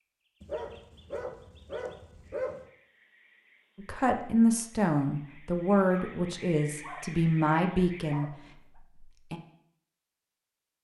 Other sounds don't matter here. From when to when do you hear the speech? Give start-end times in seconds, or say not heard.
3.8-9.4.